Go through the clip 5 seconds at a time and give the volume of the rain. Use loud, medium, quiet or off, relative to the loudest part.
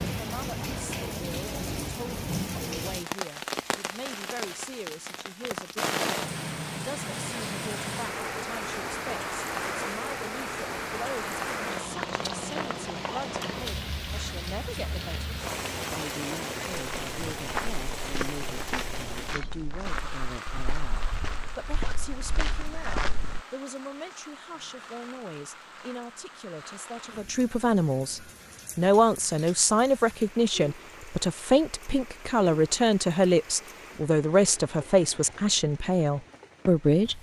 loud, loud, loud, loud, medium, quiet, quiet, quiet.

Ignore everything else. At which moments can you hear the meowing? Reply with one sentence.
The meowing can't be heard in this clip.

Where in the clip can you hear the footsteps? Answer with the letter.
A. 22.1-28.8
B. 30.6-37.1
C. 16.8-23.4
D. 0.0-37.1
C.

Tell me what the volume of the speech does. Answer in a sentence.
The volume of the speech goes up.